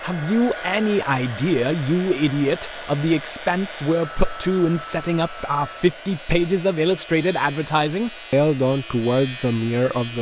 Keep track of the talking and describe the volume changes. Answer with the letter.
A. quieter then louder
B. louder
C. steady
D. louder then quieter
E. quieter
C.